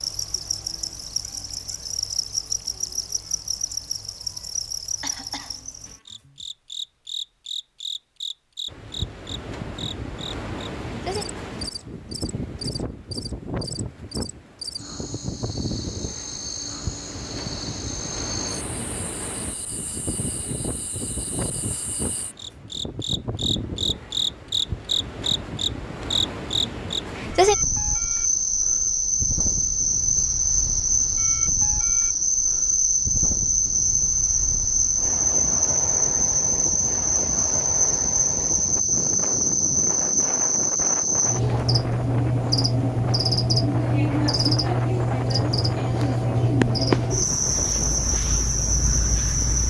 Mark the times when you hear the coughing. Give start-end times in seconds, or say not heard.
5.0-5.6.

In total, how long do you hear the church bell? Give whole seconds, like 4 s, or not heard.
not heard.